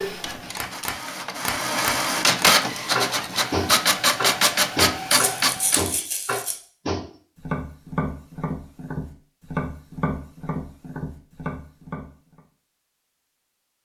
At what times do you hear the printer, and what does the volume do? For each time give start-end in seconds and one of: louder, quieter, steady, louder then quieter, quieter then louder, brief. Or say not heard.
0.0-5.8 louder.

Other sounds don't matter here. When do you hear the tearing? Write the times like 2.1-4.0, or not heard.
5.1-6.5.